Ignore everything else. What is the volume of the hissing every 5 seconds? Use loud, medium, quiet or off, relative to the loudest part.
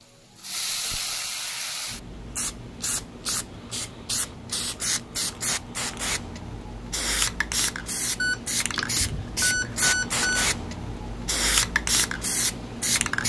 medium, loud, loud.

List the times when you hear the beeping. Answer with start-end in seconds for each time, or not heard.
8.2-10.5.